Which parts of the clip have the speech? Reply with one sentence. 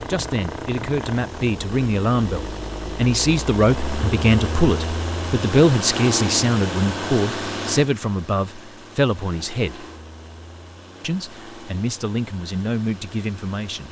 You can hear the speech from 0.0 to 9.8 s and from 11.0 to 13.8 s.